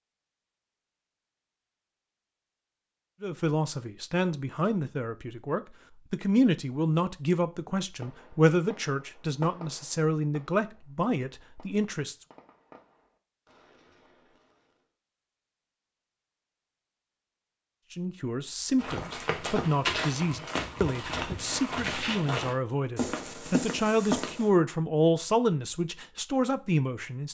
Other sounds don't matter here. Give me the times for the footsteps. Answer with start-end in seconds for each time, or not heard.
18.8-24.5.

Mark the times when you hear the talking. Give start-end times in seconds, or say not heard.
3.2-12.2, 17.9-27.3.